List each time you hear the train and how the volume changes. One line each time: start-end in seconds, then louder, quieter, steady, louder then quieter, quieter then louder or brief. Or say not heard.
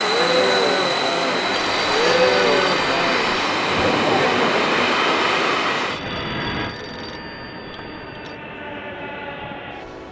0.0-10.0 quieter.